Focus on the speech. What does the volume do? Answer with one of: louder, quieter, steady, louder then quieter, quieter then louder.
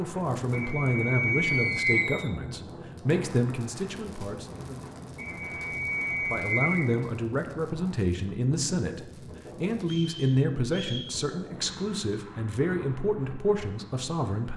steady.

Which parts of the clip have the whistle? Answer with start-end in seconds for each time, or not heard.
0.5-2.1, 5.2-6.8, 9.8-11.1.